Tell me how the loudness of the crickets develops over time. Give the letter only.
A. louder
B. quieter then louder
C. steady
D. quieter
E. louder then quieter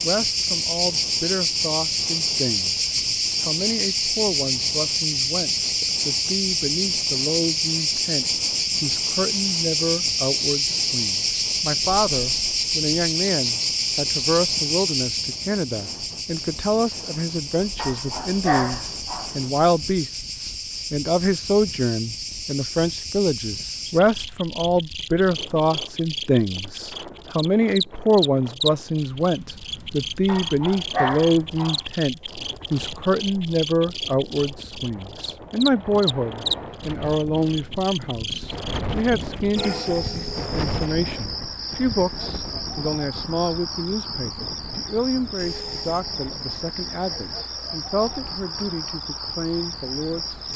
D.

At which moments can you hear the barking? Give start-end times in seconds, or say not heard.
17.8-19.4, 30.2-31.9.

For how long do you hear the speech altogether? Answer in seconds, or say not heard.
50 s.